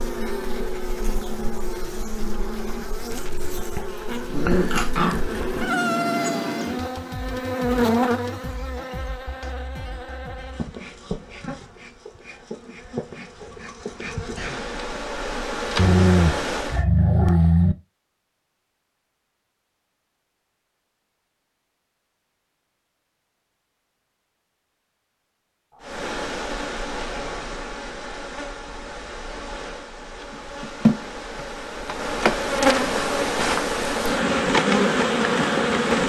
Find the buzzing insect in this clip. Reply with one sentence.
You can hear the buzzing insect from 0.0 to 16.9 s and from 25.8 to 36.0 s.